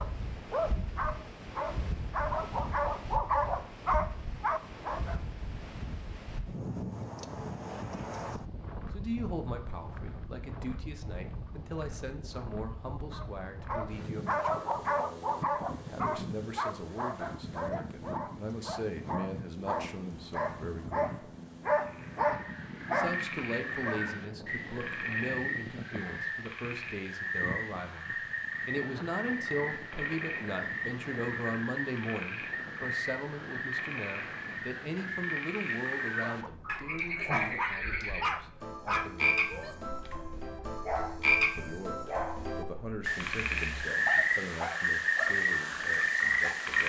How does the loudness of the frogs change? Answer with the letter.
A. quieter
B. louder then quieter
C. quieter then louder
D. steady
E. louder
E.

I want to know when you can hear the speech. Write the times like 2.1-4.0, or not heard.
8.9-14.8, 15.8-21.1, 22.9-39.9, 41.5-46.8.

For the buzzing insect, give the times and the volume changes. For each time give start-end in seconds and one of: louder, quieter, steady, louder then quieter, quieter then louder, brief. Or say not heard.
not heard.